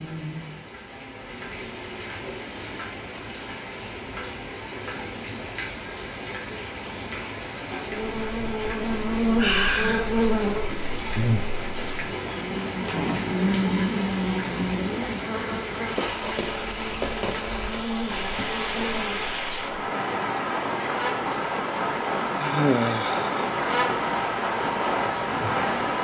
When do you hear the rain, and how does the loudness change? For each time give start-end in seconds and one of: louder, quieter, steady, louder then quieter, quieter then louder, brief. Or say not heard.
0.0-25.9 louder.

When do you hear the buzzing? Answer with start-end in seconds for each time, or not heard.
7.9-25.9.